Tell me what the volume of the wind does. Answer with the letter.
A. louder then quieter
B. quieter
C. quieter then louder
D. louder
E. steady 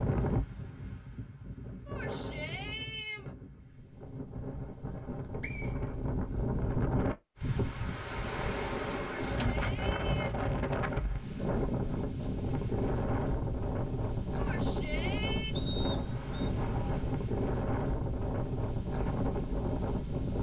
D.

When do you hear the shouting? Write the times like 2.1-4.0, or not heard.
1.9-3.3, 9.2-10.3, 14.3-15.6.